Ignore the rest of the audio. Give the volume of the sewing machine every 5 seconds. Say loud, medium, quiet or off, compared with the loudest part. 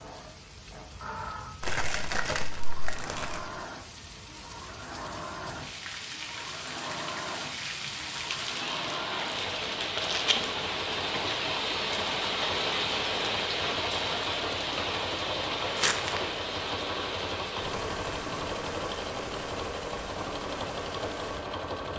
medium, medium, loud, loud, loud.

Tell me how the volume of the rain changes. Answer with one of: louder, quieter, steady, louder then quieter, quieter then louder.
louder then quieter.